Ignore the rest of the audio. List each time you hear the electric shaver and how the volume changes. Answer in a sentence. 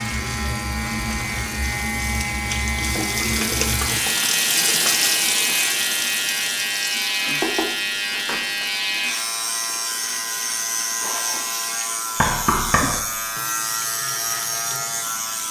You can hear the electric shaver from 0.0 to 15.4 s, at a steady volume.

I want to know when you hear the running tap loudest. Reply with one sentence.
The loudest moment of the running tap is at 5 seconds.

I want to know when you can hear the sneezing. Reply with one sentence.
The sneezing can be heard from 11.0 to 11.5 s.